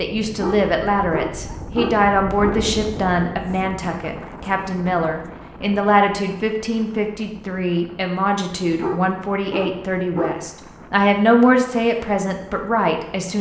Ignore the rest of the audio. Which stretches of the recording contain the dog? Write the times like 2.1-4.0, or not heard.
0.2-2.6, 8.6-10.4.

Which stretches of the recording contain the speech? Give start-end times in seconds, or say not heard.
0.0-13.3.